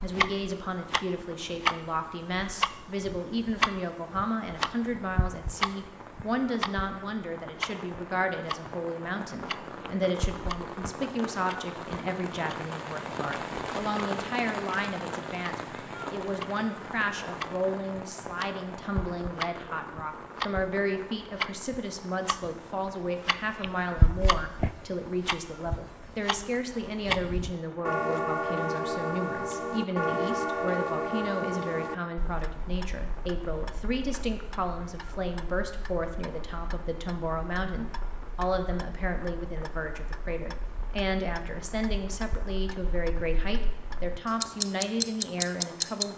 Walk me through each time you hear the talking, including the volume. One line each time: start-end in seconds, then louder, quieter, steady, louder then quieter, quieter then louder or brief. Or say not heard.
0.0-46.1 steady.